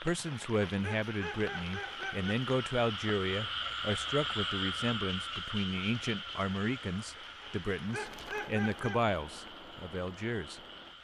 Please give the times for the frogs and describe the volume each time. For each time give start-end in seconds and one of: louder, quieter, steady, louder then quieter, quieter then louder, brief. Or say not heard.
0.1-10.9 louder then quieter.